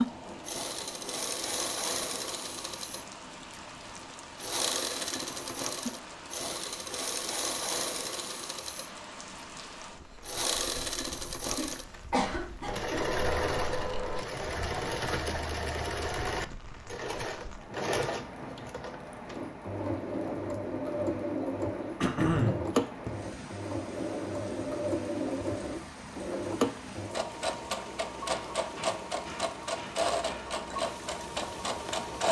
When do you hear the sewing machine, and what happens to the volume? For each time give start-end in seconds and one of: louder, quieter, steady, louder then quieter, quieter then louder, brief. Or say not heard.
0.0-32.2 steady.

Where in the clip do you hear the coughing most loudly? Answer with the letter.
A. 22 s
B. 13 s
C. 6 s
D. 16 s
A.